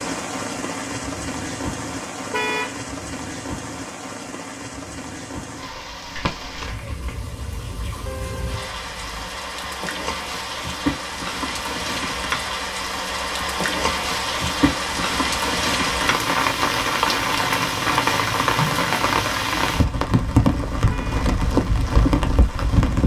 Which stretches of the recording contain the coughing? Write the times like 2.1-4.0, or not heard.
6.2-7.2.